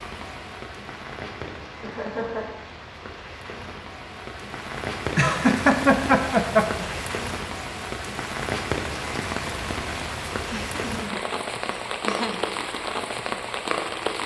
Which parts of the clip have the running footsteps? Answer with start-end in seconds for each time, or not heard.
not heard.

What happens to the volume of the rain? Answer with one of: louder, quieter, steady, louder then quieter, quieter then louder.
louder.